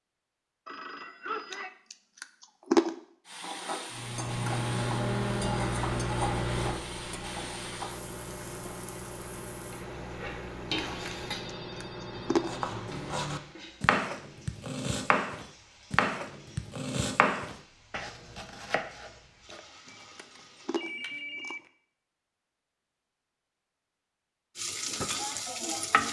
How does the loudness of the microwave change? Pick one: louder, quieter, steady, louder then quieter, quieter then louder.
quieter.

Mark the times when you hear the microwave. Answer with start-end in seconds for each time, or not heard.
3.9-13.6.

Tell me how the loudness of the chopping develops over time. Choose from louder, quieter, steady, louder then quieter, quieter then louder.
quieter.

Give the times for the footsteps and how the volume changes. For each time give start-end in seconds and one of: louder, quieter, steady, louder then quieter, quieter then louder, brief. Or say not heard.
not heard.